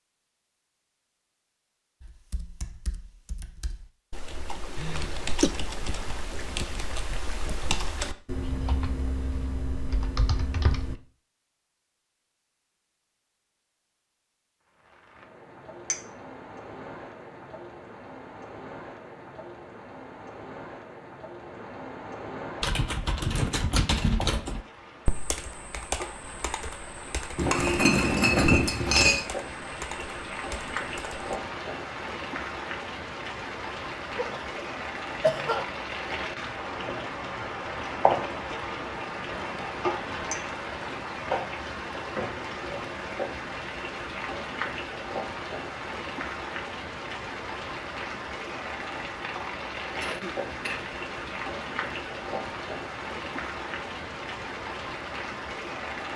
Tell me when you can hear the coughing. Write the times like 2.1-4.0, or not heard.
4.8-5.5, 34.1-35.7, 50.0-50.9.